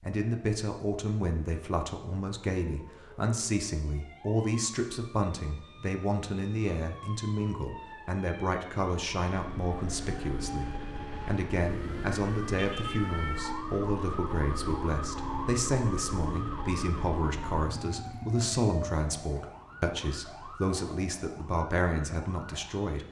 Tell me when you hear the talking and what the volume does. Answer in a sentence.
You can hear the talking from 0.0 to 23.0 s, at a steady volume.